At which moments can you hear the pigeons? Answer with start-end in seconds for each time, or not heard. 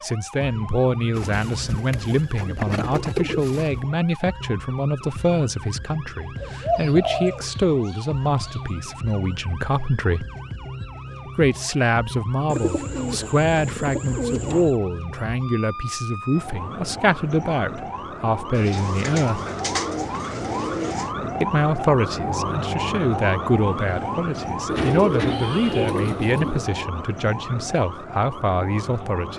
1.1-3.8, 6.4-8.6, 12.4-14.8, 18.6-21.1, 24.6-26.6.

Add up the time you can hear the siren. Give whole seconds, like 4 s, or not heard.
29 s.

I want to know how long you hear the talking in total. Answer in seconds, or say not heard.
26 s.